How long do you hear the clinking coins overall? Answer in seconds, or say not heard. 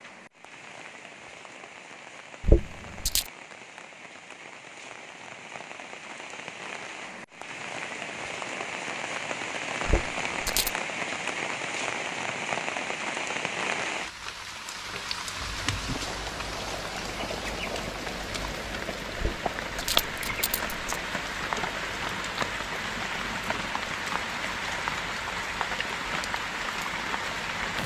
3 s.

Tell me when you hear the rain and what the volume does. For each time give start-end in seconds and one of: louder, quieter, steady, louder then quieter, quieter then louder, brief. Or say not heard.
0.0-27.8 louder.